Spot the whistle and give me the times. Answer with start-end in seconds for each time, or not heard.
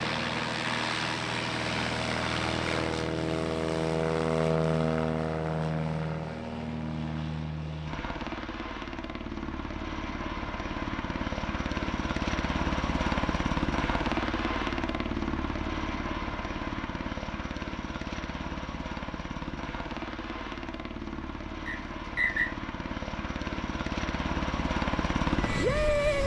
21.6-22.5.